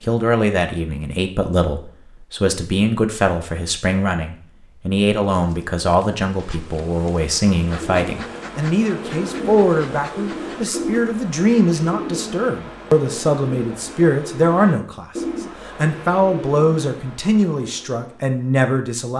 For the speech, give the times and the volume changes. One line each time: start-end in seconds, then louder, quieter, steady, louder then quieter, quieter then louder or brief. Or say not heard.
0.0-19.1 steady.